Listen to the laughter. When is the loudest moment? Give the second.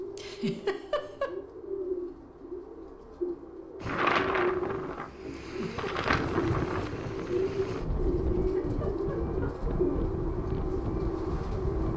1 s.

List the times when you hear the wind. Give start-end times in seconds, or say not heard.
3.8-11.9.